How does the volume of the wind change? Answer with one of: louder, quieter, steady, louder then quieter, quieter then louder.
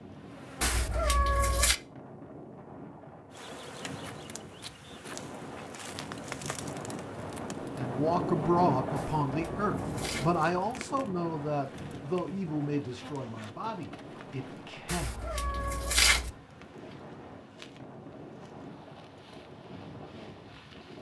louder then quieter.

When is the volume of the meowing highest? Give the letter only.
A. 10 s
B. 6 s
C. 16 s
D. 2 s
C.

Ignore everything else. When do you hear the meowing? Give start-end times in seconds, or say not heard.
0.6-1.8, 8.9-10.4, 14.8-16.3.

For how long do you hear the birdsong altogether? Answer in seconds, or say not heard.
not heard.